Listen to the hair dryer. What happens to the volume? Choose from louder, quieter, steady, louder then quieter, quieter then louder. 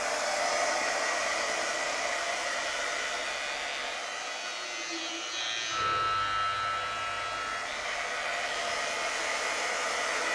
quieter then louder.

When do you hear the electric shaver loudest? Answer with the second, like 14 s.
6 s.